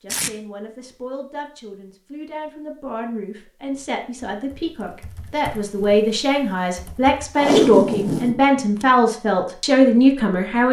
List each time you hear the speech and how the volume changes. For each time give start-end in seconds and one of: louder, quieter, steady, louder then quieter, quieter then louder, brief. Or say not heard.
0.0-10.6 louder.